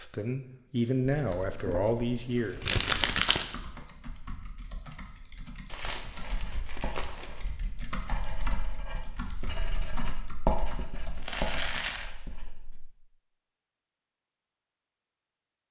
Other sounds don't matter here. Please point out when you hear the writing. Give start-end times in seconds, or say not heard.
6.2-12.8.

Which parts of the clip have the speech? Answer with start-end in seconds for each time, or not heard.
0.0-2.6.